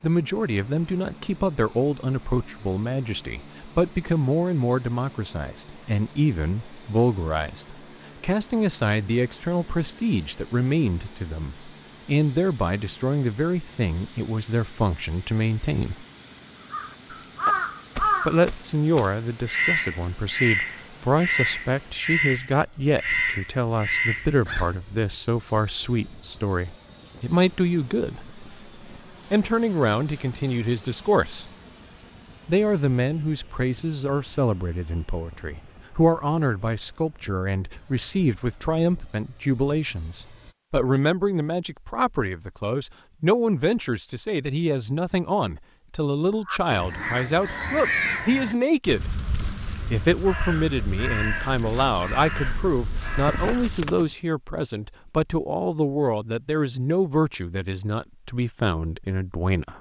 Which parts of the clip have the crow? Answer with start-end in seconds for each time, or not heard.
16.7-24.8, 46.5-54.1.